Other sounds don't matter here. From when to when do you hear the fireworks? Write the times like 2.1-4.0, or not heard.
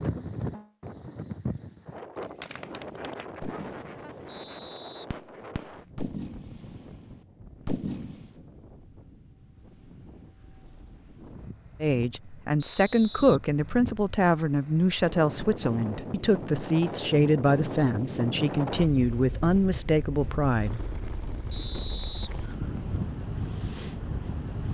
2.2-8.3.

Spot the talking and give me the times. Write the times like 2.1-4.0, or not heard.
11.8-20.8.